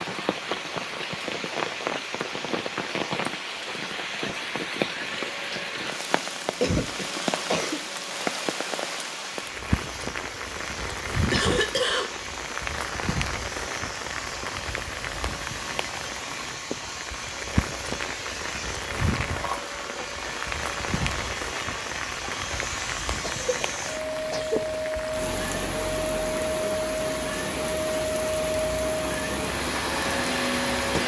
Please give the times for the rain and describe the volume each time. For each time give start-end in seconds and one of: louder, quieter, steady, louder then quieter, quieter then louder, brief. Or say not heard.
0.0-31.0 steady.